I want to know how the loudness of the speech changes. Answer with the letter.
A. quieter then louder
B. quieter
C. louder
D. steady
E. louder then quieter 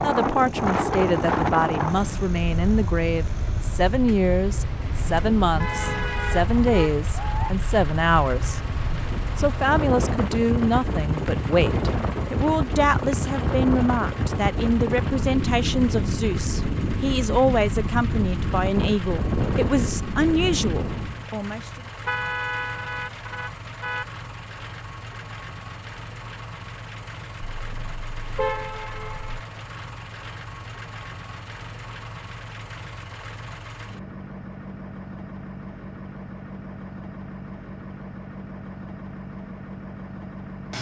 D.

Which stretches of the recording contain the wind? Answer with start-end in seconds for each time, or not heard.
0.0-21.2.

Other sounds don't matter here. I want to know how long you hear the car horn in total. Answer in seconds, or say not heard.
6 s.